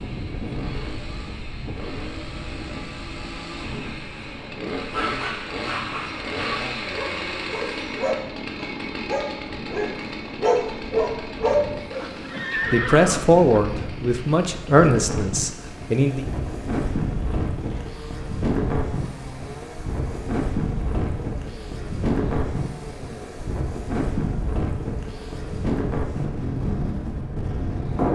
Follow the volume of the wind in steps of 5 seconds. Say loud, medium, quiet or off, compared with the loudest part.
medium, quiet, medium, loud, loud, loud.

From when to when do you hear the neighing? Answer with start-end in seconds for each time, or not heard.
11.9-13.4.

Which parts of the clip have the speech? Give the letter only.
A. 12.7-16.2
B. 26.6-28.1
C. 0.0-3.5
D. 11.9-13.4
A.